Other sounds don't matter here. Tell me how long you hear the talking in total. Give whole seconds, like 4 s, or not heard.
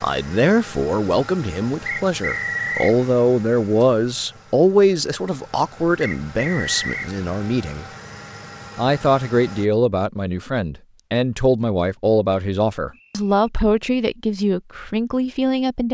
15 s.